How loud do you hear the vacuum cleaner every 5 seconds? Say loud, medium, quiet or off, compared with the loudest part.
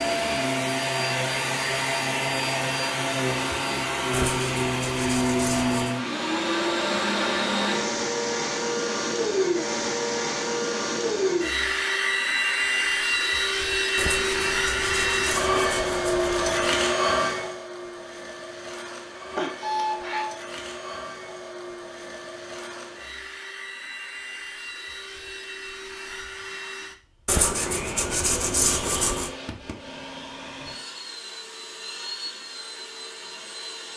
loud, loud, loud, loud, quiet, quiet, quiet.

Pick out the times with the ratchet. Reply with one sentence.
The ratchet can't be heard in this clip.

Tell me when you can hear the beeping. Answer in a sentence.
You can hear the beeping from 19.4 to 20.4 s.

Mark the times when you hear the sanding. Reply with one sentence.
You can hear the sanding from 4.1 to 6.0 s, from 13.9 to 16.8 s and from 27.2 to 29.3 s.